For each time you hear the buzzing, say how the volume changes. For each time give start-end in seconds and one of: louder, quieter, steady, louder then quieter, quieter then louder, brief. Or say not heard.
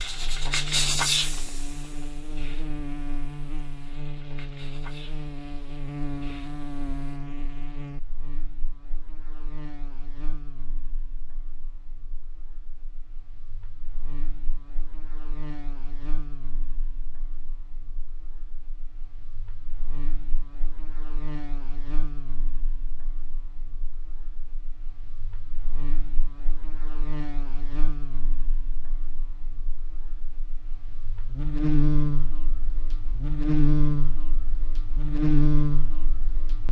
0.0-36.6 quieter then louder.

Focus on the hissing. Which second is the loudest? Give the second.
1 s.